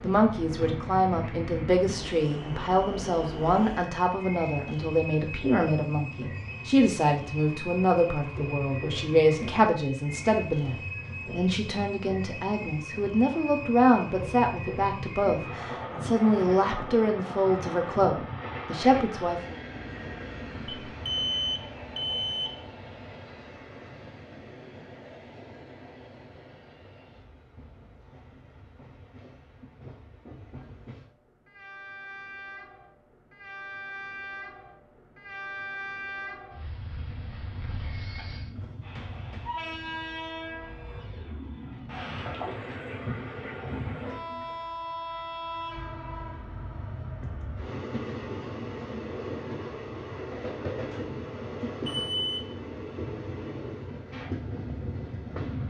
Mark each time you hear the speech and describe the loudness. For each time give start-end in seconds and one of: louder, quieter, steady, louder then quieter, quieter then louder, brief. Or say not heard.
0.0-19.6 steady.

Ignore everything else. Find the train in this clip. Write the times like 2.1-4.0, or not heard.
0.0-55.6.